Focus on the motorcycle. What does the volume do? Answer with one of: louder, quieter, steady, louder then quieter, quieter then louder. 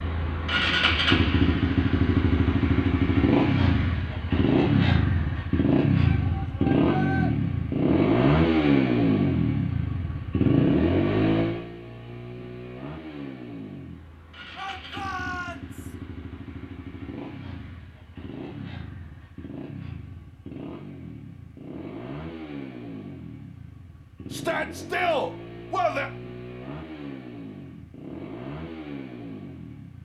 quieter.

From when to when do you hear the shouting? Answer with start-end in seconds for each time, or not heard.
6.0-7.3, 14.6-15.9, 24.3-26.1.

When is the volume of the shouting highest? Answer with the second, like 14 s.
25 s.